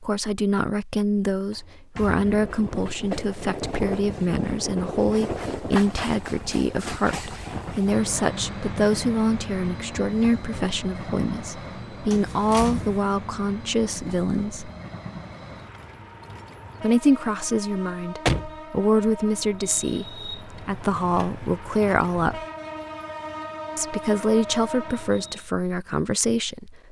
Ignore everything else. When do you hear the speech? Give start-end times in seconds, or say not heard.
0.0-14.7, 16.8-22.4, 23.8-26.8.